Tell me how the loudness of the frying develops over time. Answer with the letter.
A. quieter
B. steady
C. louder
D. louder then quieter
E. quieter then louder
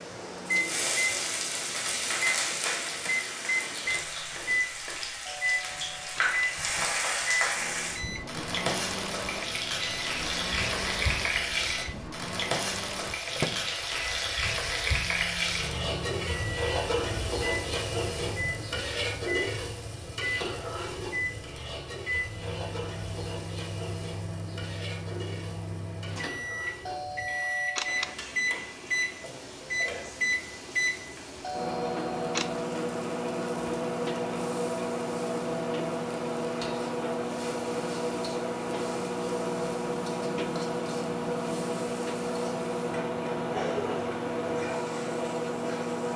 A.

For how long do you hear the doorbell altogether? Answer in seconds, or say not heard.
4 s.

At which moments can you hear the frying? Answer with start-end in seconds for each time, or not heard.
0.0-46.1.